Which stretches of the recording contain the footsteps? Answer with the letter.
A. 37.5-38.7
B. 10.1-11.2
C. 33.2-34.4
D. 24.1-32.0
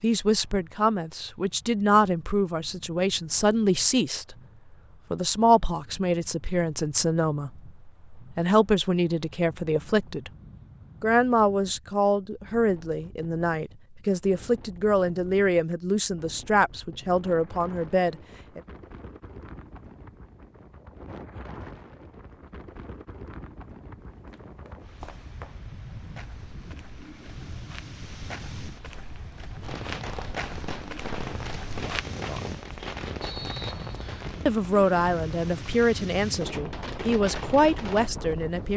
D.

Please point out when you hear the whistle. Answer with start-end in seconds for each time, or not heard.
33.2-34.4.